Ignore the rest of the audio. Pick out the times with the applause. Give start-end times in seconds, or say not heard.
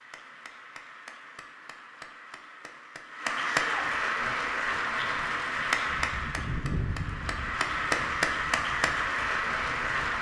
0.0-10.1.